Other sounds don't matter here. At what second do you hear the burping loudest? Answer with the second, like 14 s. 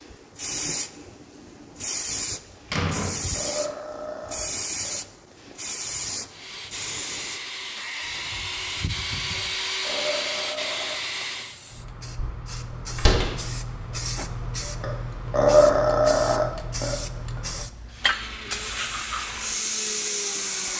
16 s.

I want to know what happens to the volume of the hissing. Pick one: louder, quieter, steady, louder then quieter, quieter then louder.
quieter then louder.